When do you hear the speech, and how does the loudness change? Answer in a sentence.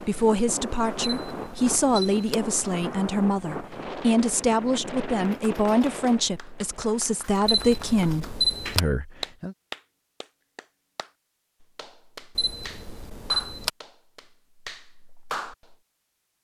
You can hear the speech from 0.0 to 9.6 s, at a steady volume.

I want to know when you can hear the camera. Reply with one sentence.
The camera can be heard from 1.0 to 2.4 s, from 7.5 to 8.8 s and from 12.3 to 13.7 s.